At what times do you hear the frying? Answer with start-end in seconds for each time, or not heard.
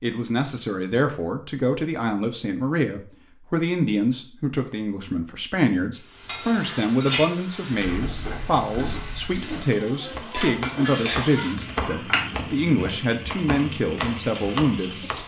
6.0-15.2.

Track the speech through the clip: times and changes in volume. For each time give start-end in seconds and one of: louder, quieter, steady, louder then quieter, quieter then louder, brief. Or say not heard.
0.0-14.9 steady.